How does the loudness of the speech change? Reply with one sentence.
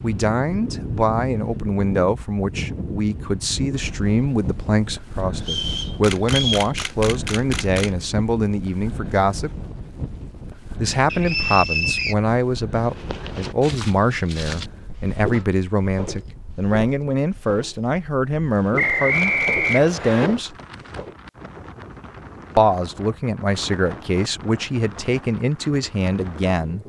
The loudness of the speech stays about the same.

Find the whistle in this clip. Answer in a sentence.
You can hear the whistle from 5.4 to 6.7 s, from 11.1 to 12.2 s and from 18.8 to 20.3 s.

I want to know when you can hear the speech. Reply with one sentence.
The speech can be heard from 0.0 to 9.6 s, from 10.8 to 20.6 s and from 22.6 to 26.8 s.